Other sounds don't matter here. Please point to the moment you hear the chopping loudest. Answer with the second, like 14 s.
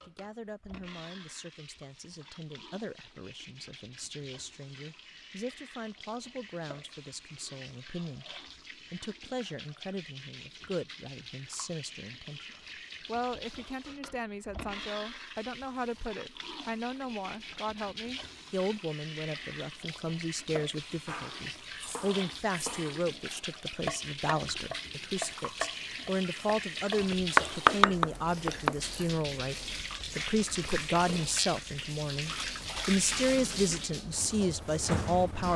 28 s.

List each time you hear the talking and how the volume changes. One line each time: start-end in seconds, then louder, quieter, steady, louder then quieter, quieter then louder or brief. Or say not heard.
0.1-35.5 louder.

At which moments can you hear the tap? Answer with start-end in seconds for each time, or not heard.
0.0-35.5.